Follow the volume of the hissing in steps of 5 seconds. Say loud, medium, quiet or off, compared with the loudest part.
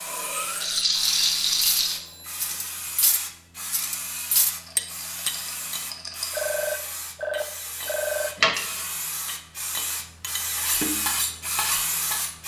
medium, medium, loud.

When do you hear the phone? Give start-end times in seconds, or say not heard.
1.8-2.5, 6.3-8.3.